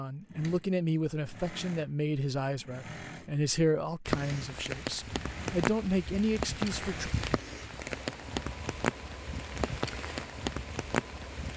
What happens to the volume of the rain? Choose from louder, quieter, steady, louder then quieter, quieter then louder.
steady.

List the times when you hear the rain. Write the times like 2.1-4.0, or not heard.
4.0-11.5.